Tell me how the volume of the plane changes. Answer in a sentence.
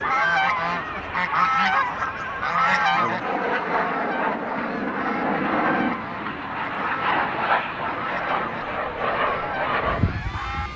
The loudness of the plane goes up.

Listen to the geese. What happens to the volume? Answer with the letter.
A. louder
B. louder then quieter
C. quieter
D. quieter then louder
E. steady
C.